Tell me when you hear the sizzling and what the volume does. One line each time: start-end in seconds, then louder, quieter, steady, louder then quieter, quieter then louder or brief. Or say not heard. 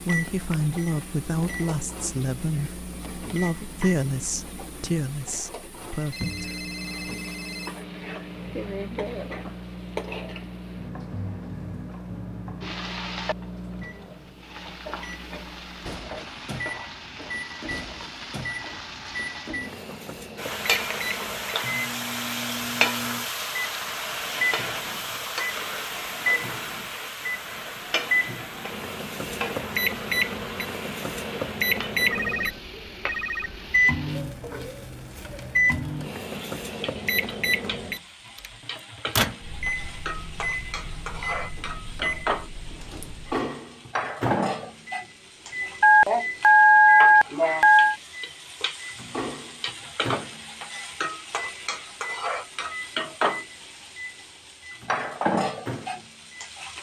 0.0-56.7 louder.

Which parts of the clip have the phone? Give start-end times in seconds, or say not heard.
6.1-7.7, 32.1-33.6, 45.8-48.0.